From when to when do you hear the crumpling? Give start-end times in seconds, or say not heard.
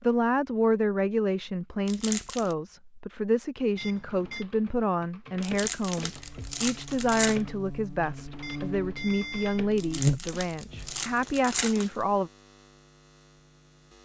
1.9-2.5, 5.4-7.4, 9.8-11.9.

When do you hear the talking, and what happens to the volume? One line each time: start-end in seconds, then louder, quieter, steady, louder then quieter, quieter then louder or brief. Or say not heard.
0.0-12.3 steady.